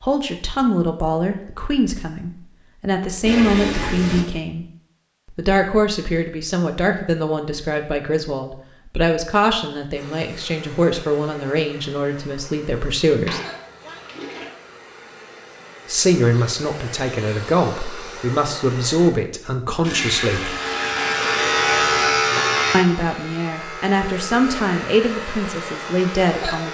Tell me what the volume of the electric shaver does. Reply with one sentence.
The volume of the electric shaver goes down.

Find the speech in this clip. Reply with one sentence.
The speech can be heard from 0.0 to 4.7 s, from 5.3 to 13.4 s, from 15.8 to 20.6 s and from 22.7 to 26.7 s.